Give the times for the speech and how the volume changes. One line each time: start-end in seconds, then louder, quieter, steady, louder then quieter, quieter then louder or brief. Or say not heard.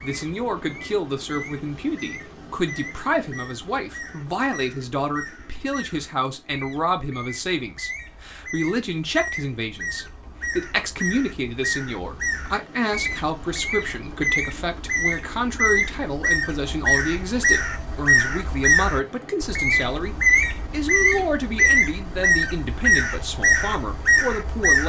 0.0-24.8 steady.